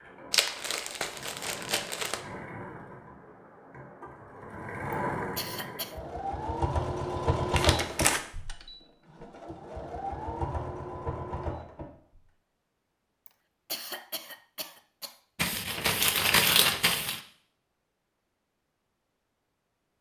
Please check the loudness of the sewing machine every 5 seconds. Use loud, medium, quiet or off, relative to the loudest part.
medium, loud, loud, off.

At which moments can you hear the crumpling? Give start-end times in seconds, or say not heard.
0.3-2.2, 7.5-8.2, 15.3-17.2.